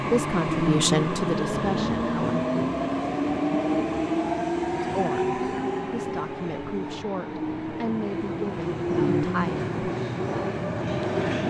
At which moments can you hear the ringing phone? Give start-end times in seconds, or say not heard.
not heard.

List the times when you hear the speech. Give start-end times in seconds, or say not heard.
0.0-2.4, 4.8-9.8.